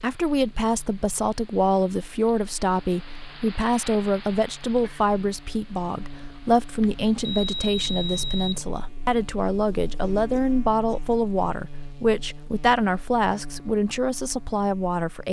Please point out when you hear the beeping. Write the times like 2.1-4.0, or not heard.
6.8-8.7.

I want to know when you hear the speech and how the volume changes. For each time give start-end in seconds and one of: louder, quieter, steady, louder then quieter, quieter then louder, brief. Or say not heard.
0.0-15.2 steady.